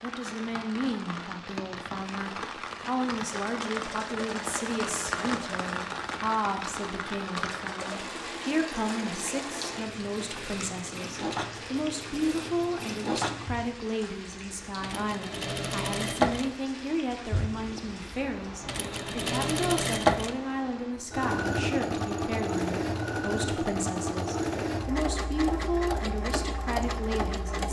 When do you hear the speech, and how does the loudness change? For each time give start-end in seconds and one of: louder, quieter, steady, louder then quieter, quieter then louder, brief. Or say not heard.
0.0-27.6 steady.